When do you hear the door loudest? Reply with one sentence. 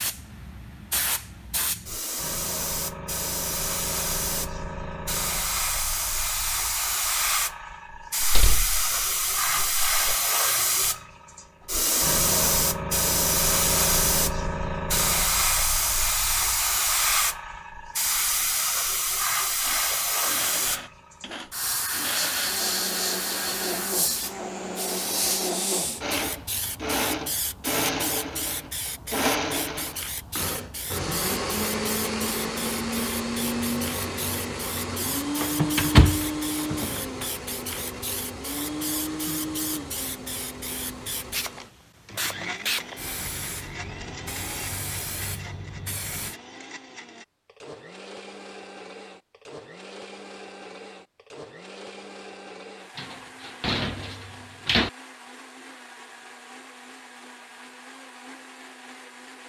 The volume of the door peaks at 36 seconds.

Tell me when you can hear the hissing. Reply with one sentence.
You can hear the hissing from 0.0 to 46.4 s.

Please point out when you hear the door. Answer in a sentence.
You can hear the door from 8.2 to 10.0 s, from 35.4 to 37.2 s and from 53.0 to 54.9 s.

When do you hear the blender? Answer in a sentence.
You can hear the blender from 19.6 to 59.4 s.